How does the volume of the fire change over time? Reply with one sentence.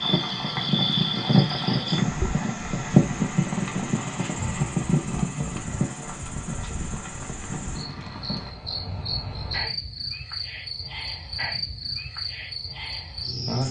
The loudness of the fire goes down.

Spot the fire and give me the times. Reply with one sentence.
You can hear the fire from 0.0 to 8.6 s.